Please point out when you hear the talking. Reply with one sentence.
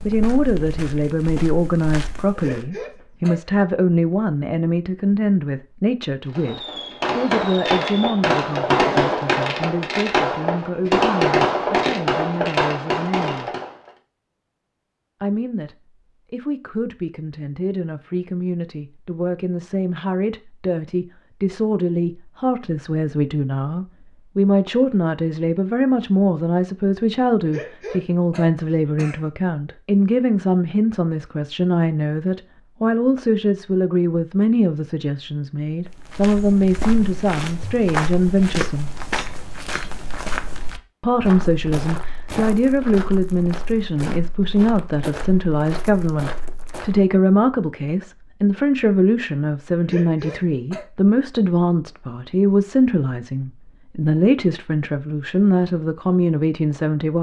The talking can be heard from 0.1 to 13.6 s, from 15.2 to 38.9 s and from 41.0 to 57.1 s.